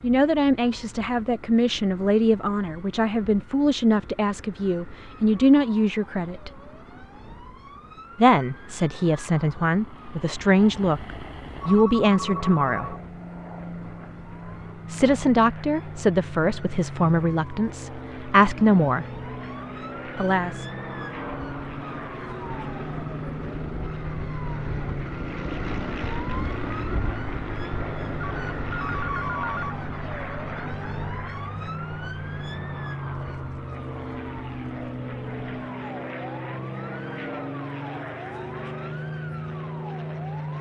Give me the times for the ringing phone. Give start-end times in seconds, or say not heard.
11.6-13.0, 28.2-29.8.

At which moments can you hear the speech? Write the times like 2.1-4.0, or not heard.
0.0-6.5, 8.2-12.9, 14.9-19.1, 20.1-20.6.